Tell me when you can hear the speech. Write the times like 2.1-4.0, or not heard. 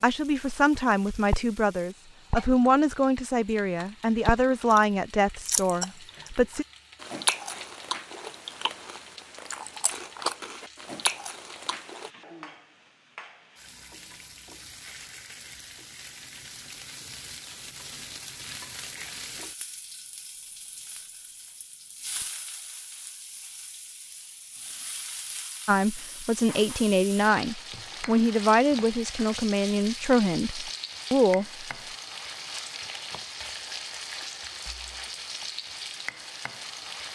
0.0-6.7, 25.6-31.6.